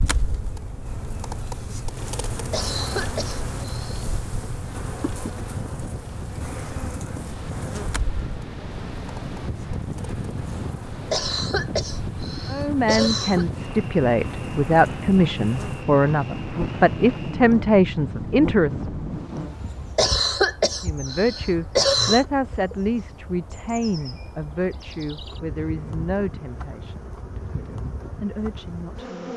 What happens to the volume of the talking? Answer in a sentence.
The loudness of the talking goes down.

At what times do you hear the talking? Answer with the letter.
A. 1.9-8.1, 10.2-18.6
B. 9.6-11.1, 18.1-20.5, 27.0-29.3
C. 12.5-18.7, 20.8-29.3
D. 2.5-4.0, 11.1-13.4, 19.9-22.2
C.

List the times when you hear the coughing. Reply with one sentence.
You can hear the coughing from 2.5 to 4.0 s, from 11.1 to 13.4 s and from 19.9 to 22.2 s.